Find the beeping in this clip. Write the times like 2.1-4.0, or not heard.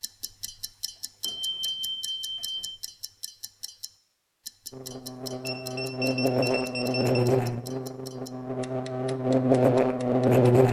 1.2-2.8, 5.5-7.2.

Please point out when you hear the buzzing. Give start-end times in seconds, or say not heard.
4.7-10.6.